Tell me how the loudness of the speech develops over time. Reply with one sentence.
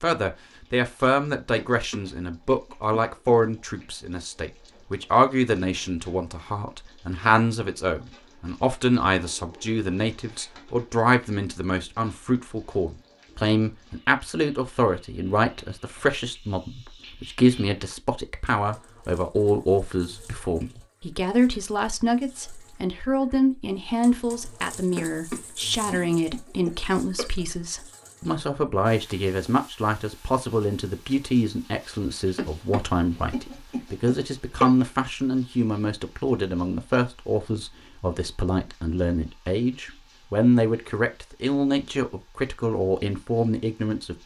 The loudness of the speech stays about the same.